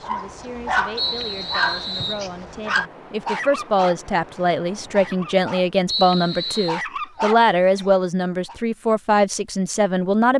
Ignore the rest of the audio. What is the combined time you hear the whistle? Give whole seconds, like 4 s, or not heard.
2 s.